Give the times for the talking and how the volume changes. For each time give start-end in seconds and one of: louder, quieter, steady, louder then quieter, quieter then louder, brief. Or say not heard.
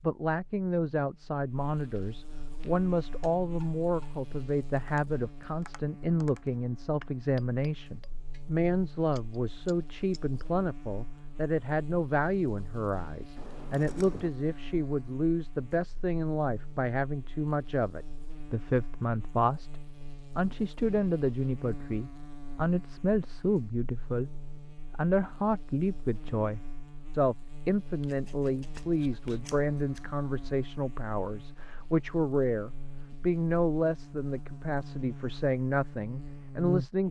0.0-37.0 steady.